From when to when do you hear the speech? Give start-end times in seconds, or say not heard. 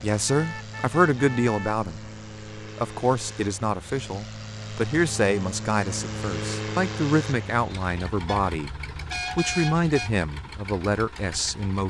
0.0-8.7, 9.3-11.8.